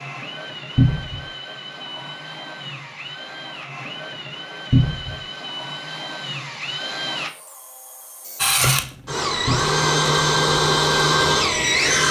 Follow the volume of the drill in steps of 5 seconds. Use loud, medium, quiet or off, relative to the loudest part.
quiet, medium, loud.